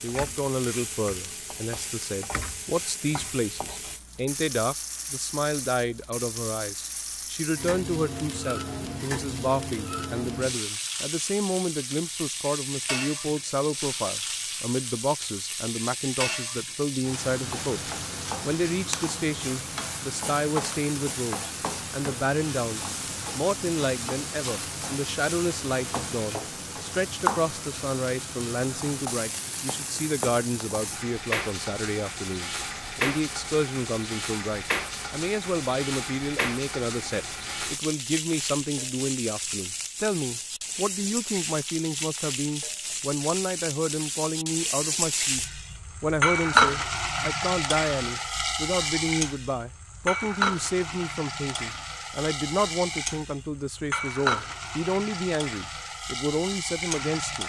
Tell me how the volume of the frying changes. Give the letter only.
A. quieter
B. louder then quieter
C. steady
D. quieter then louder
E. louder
E.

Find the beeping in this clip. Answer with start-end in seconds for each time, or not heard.
not heard.